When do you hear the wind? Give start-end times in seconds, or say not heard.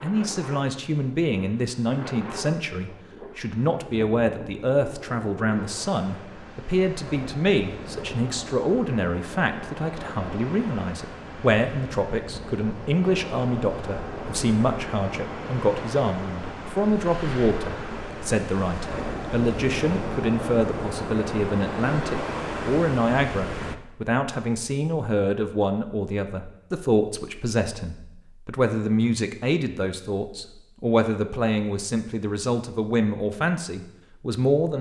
0.0-23.8.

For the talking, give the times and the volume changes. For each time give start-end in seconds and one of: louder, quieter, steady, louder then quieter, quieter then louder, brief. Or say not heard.
0.0-34.7 steady.